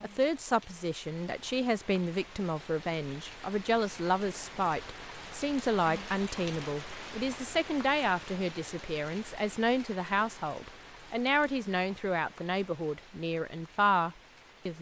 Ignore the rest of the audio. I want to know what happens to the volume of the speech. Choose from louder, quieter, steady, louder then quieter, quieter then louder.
steady.